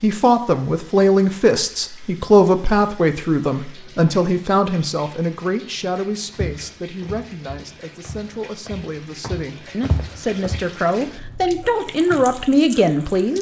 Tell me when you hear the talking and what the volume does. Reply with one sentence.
You can hear the talking from 0.0 to 13.3 s, getting quieter then louder.